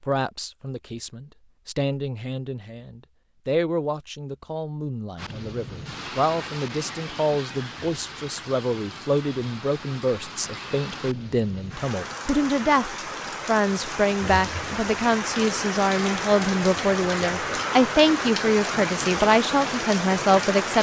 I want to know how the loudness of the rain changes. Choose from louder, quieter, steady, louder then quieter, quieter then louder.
louder.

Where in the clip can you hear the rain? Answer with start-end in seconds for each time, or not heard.
5.2-20.7.